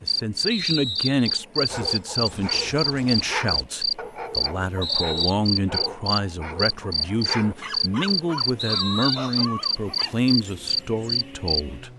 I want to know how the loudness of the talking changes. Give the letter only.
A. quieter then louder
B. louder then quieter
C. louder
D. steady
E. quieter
D.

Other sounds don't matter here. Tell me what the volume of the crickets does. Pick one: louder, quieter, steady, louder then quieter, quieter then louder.
steady.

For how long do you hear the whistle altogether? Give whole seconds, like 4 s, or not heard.
2 s.